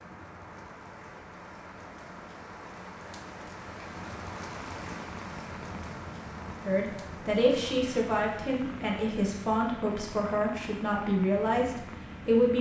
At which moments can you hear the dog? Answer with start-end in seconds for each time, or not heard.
not heard.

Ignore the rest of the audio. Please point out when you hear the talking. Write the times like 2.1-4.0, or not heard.
6.6-12.5.